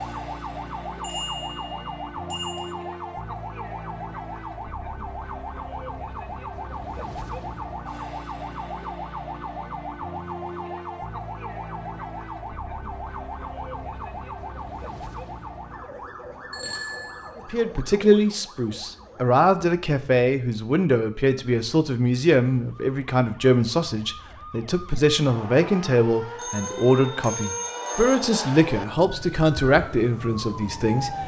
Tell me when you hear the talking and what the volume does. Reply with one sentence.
You can hear the talking from 17.4 to 31.2 s, at a steady volume.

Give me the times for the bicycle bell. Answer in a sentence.
The bicycle bell can be heard from 1.0 to 2.7 s, from 16.5 to 17.3 s and from 26.4 to 28.3 s.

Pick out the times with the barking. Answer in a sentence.
You can't hear the barking here.